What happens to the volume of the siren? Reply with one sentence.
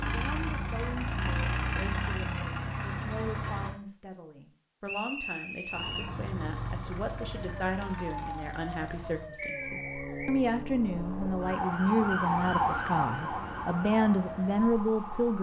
The volume of the siren goes up, then down.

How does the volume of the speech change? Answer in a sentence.
The volume of the speech goes up.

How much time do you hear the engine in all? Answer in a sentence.
The engine can be heard for 7 seconds in total.